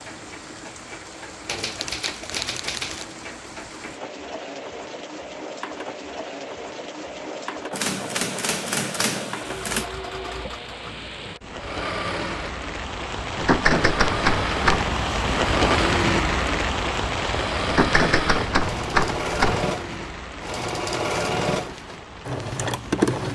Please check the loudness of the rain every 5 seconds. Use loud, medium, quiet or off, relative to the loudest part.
quiet, quiet, medium, loud, quiet.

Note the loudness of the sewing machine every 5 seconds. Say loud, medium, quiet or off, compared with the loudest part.
quiet, medium, medium, loud, loud.